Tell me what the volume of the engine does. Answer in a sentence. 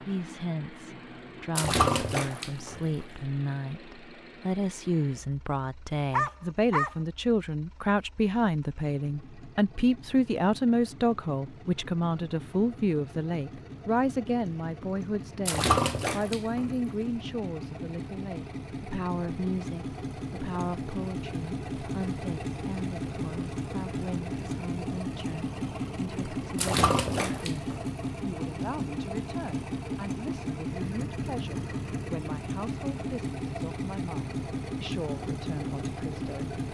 The loudness of the engine goes up.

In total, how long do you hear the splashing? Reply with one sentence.
You can hear the splashing for 4 seconds altogether.